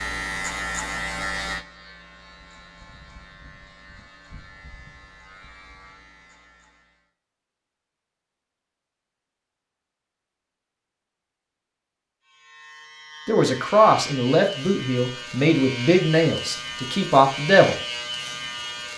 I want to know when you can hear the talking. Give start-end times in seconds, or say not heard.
13.2-17.8.